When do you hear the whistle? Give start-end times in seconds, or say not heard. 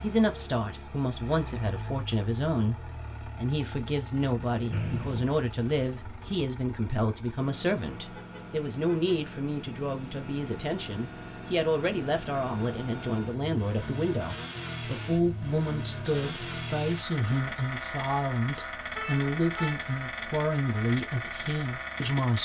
4.7-5.3.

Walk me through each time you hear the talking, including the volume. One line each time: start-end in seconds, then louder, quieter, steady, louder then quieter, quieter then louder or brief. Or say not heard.
0.0-22.4 steady.